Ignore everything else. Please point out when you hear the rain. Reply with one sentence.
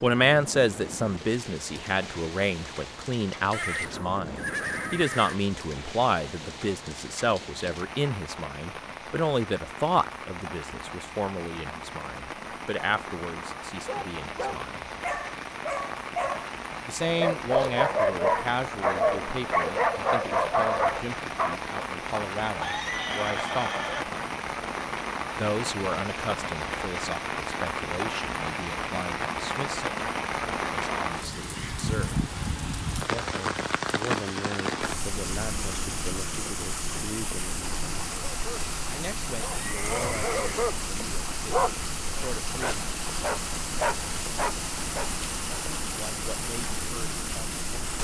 The rain can be heard from 0.0 to 47.9 s.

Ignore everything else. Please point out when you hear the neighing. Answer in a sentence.
The neighing can be heard from 3.5 to 5.3 s, from 22.6 to 24.1 s and from 39.5 to 40.7 s.